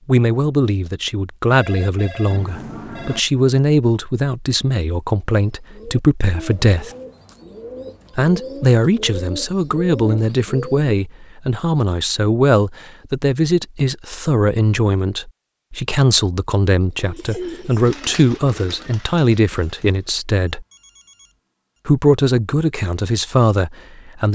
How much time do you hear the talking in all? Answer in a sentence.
You can hear the talking for 22 seconds altogether.